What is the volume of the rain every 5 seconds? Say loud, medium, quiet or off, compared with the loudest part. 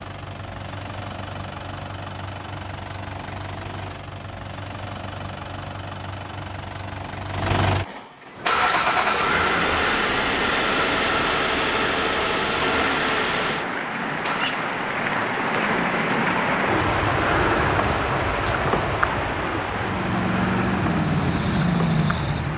off, medium, medium, loud, medium.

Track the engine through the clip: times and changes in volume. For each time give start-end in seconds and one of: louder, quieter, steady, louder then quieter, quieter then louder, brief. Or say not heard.
0.0-14.6 louder
19.6-22.5 brief.